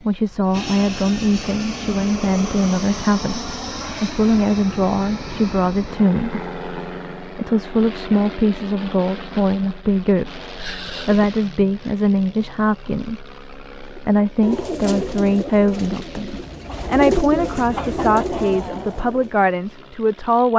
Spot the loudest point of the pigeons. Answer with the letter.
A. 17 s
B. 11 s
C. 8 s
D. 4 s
A.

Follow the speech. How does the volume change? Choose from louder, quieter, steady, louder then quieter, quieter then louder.
steady.